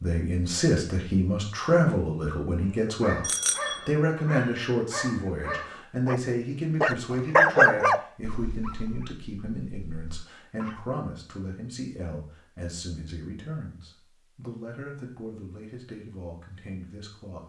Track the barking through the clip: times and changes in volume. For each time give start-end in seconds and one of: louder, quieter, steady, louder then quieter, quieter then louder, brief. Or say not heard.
2.6-10.8 louder then quieter.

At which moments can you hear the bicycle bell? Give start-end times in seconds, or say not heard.
3.2-3.9.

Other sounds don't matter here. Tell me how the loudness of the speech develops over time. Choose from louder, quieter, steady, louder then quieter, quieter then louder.
quieter.